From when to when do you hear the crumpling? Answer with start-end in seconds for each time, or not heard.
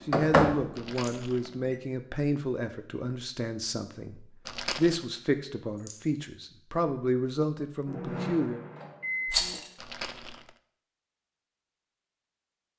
0.8-1.6, 4.5-5.0, 9.8-10.5.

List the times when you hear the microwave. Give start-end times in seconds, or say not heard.
0.0-1.8, 7.8-9.6.